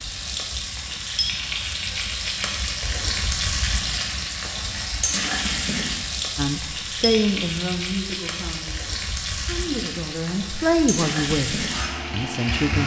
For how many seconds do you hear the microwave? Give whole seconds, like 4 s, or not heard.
not heard.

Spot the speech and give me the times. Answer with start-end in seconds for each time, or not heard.
6.3-12.8.